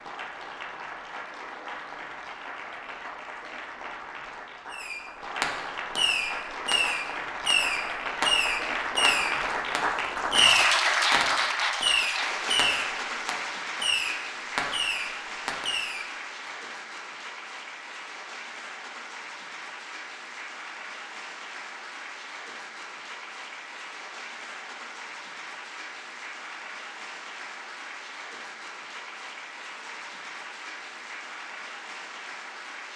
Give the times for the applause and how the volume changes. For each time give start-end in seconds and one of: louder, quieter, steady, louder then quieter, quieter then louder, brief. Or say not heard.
0.0-32.9 louder then quieter.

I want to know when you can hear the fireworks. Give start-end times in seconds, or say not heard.
4.7-16.5.